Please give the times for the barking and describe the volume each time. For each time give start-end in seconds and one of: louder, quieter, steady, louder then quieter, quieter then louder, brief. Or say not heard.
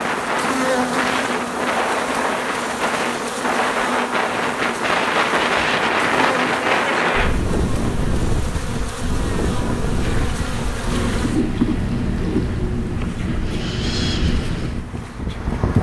not heard.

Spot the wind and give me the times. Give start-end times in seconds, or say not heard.
0.0-15.7.